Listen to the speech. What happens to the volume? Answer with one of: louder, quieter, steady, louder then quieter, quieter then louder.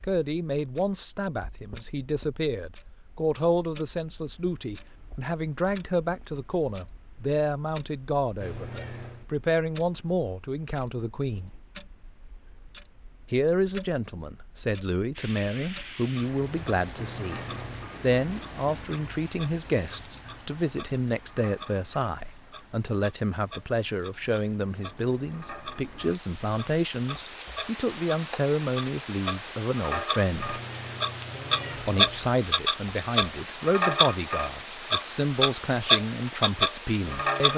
steady.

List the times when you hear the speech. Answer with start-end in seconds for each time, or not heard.
0.0-11.5, 13.3-17.4, 18.0-30.6, 31.9-37.5.